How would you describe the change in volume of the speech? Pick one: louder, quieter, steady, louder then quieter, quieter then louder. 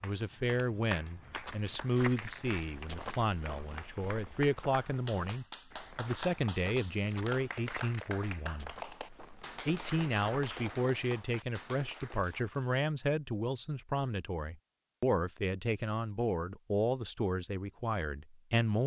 steady.